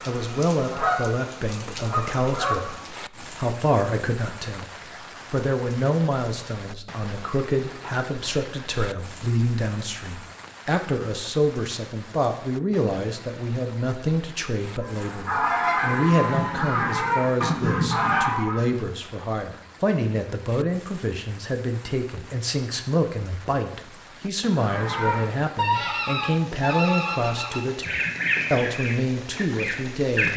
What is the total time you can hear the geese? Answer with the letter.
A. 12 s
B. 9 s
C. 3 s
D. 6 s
A.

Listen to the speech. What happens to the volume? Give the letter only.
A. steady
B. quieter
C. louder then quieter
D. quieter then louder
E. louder
A.